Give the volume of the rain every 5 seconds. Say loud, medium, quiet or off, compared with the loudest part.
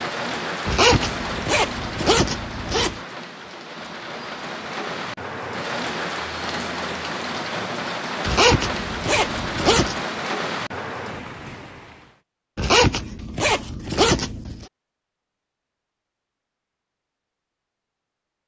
loud, loud, loud, off.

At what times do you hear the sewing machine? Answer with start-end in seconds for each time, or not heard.
not heard.